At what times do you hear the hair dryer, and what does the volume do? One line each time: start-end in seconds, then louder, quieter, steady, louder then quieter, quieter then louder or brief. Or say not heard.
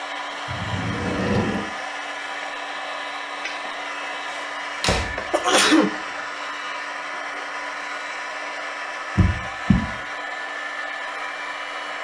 0.0-11.9 steady.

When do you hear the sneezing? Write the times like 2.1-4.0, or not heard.
5.3-6.0.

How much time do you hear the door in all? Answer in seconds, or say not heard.
3 s.